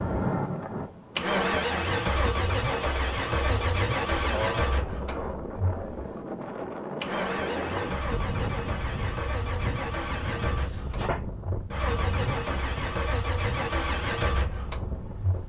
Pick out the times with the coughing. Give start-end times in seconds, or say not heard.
4.2-5.6, 10.6-11.2.